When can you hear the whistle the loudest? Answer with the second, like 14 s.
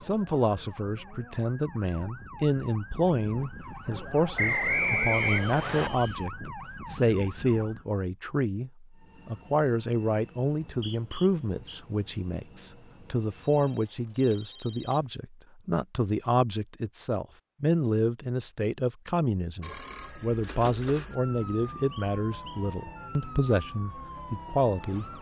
5 s.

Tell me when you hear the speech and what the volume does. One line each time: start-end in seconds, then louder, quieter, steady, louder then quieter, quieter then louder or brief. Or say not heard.
0.0-25.1 steady.